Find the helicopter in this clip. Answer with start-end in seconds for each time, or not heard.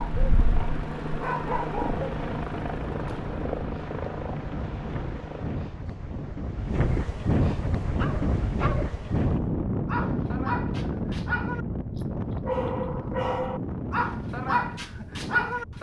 0.0-6.0.